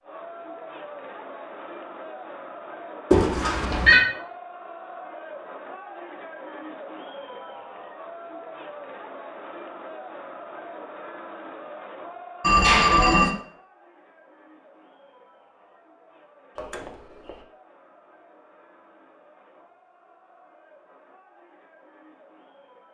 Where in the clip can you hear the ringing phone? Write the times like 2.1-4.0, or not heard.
3.1-4.0, 12.4-13.3, 16.6-17.4.